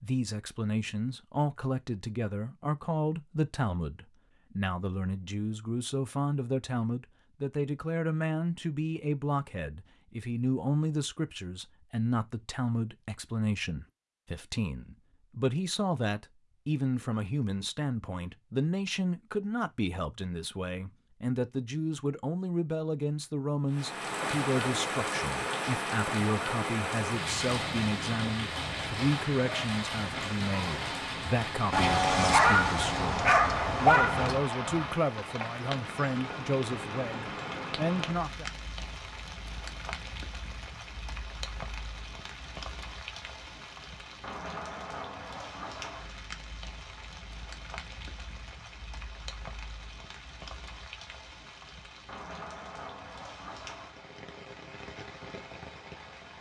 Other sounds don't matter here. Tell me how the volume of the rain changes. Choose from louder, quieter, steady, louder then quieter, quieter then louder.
quieter.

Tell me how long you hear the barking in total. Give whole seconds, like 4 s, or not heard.
3 s.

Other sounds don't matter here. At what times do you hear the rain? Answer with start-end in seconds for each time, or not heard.
23.7-56.3.